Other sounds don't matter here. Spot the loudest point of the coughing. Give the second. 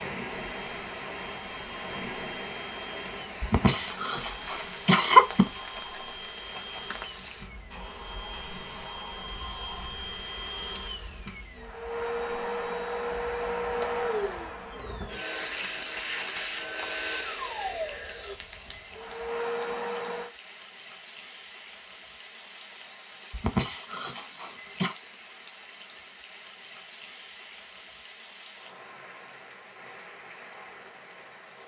5 s.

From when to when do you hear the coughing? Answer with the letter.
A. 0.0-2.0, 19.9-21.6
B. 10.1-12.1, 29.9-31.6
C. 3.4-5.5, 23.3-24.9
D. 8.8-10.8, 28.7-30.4
C.